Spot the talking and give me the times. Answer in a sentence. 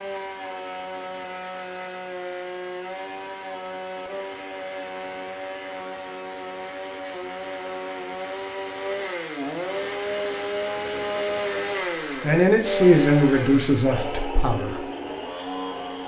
You can hear the talking from 12.2 to 14.8 s.